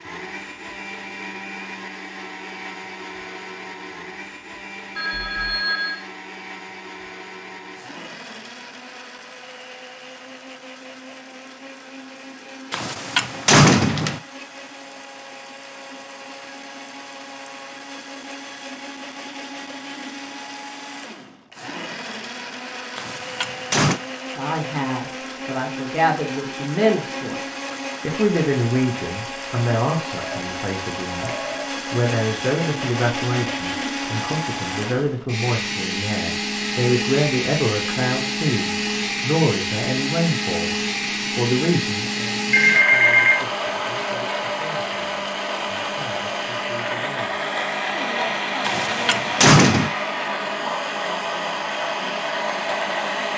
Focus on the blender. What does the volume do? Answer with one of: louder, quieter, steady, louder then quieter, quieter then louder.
louder.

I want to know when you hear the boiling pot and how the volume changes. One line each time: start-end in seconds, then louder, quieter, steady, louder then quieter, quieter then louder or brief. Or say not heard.
not heard.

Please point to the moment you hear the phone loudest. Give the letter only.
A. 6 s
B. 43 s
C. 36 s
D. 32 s
B.